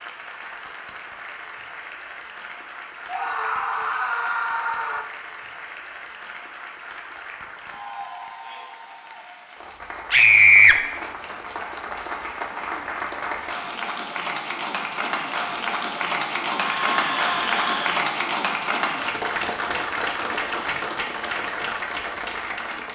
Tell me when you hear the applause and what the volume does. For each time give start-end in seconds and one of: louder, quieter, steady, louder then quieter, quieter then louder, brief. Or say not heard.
0.0-22.9 louder.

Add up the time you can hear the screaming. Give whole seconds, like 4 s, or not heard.
4 s.